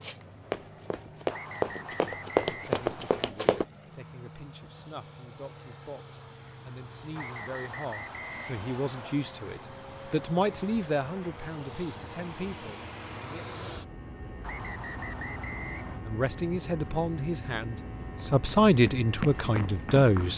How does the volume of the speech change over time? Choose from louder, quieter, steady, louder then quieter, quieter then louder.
louder.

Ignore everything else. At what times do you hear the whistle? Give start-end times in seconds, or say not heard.
1.3-3.3, 7.2-9.2, 14.4-16.0.